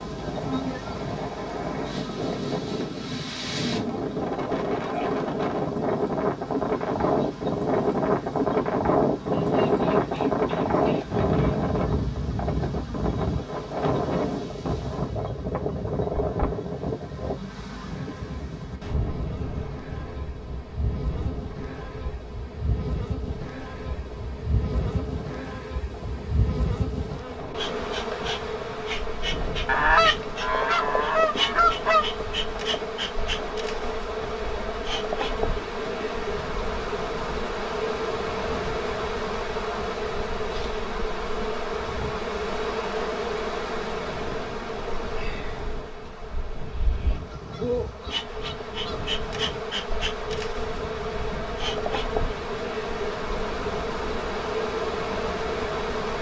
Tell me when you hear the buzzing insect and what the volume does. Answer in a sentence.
The buzzing insect can be heard from 0.0 to 56.1 s, getting louder.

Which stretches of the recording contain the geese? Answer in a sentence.
You can hear the geese from 9.3 to 11.2 s, from 29.6 to 32.0 s and from 47.1 to 49.1 s.